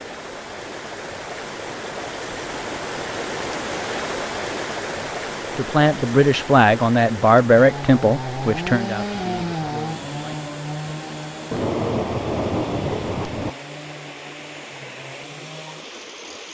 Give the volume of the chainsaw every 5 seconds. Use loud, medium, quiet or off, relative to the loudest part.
off, loud, medium, quiet.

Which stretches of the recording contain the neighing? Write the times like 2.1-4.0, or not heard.
not heard.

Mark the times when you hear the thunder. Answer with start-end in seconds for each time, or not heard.
11.5-13.5.